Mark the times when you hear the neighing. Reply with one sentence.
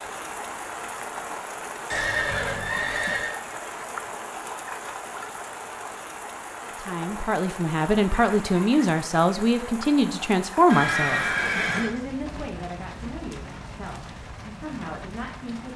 The neighing can be heard from 1.9 to 3.4 s and from 10.7 to 11.9 s.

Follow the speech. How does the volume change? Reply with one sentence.
The volume of the speech goes down.